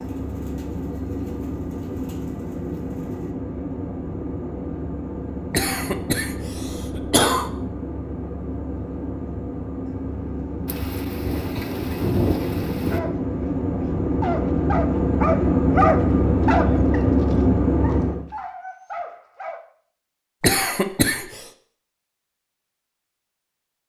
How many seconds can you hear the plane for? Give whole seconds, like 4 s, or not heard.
18 s.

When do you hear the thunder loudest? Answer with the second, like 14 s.
12 s.